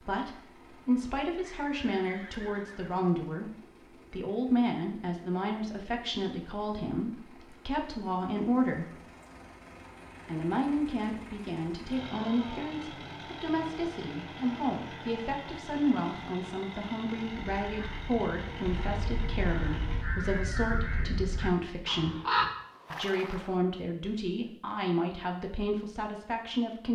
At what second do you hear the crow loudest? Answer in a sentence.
The loudest moment of the crow is at 22 seconds.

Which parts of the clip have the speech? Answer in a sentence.
The speech can be heard from 0.1 to 8.9 s, from 10.2 to 22.1 s and from 22.9 to 26.9 s.